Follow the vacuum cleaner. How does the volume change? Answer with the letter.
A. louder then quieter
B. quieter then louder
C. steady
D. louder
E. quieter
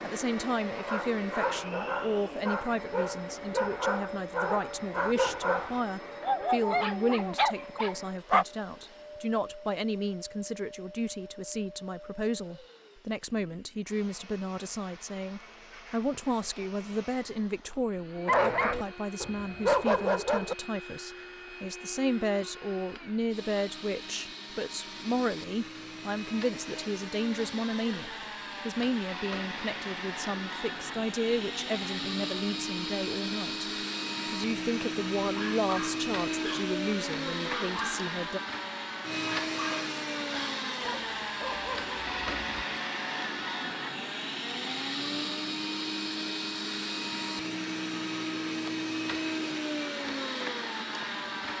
B.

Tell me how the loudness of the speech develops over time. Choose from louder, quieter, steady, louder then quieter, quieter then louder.
steady.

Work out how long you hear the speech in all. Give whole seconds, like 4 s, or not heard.
38 s.